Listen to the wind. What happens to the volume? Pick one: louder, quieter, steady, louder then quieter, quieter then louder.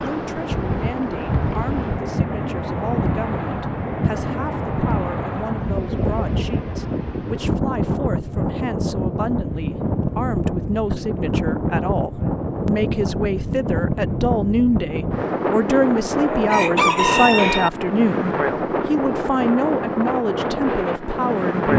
steady.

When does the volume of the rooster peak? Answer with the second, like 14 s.
17 s.